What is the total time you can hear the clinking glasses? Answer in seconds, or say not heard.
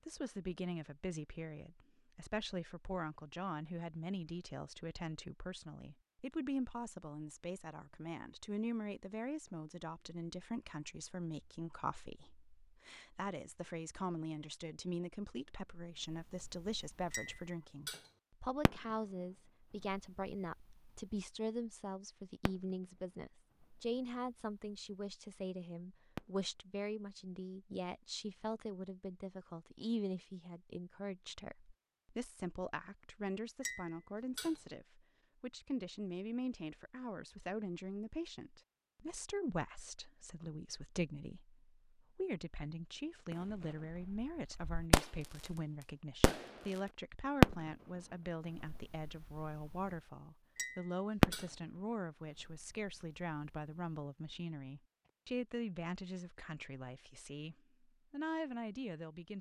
3 s.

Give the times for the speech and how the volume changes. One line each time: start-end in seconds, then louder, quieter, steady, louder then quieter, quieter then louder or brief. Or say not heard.
0.1-59.3 steady.